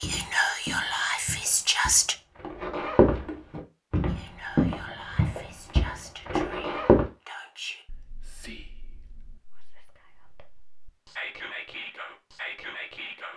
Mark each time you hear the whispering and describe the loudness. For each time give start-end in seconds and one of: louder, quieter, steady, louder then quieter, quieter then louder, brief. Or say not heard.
0.0-2.1 brief
4.0-13.3 quieter then louder.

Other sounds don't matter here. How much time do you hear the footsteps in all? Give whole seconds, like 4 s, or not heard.
7 s.